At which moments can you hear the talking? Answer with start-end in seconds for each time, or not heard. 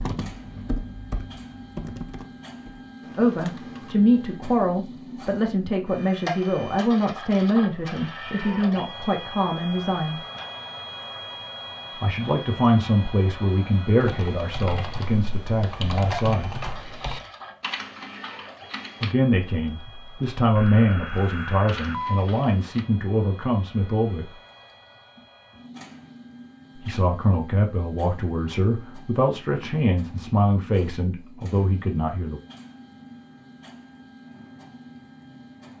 3.1-10.2, 12.0-16.6, 19.0-24.3, 26.8-32.4.